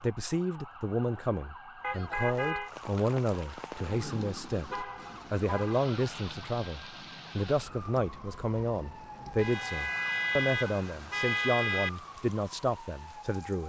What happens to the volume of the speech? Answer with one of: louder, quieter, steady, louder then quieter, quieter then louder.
steady.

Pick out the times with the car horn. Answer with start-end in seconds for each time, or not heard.
1.8-2.7, 4.7-5.9, 9.3-11.9.